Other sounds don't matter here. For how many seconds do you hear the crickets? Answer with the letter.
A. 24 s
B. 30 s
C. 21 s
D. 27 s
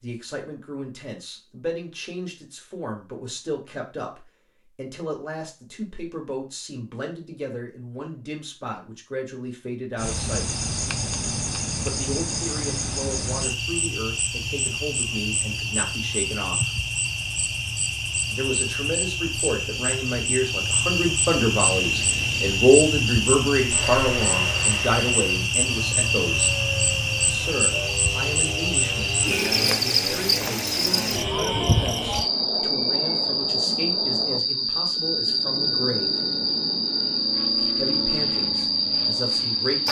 B.